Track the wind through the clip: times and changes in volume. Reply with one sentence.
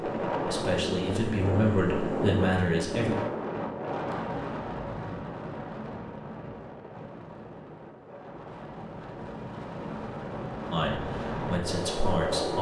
You can hear the wind from 0.0 to 12.5 s, getting quieter then louder.